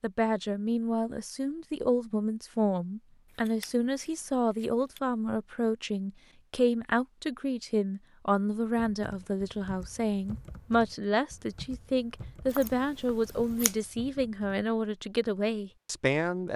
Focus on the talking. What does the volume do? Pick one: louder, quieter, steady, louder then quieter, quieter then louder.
steady.